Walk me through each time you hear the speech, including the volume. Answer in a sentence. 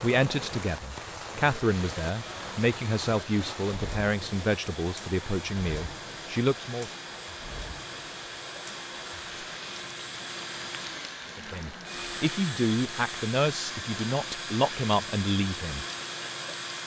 You can hear the speech from 0.0 to 6.9 s, at a steady volume; and from 11.3 to 15.8 s, at a steady volume.